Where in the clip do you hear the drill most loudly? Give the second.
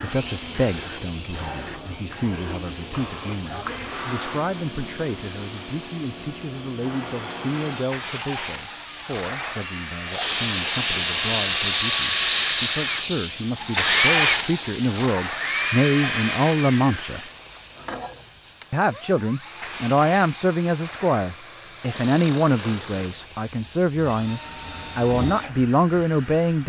14 s.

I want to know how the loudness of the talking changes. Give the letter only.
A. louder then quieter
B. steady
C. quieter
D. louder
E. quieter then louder
D.